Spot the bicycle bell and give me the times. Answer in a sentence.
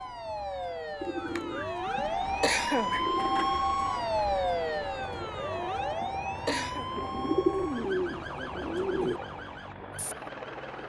You can't hear the bicycle bell here.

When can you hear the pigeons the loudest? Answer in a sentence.
The loudest moment of the pigeons is at 7 seconds.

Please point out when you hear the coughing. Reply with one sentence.
The coughing can be heard from 1.9 to 3.0 s and from 5.9 to 6.8 s.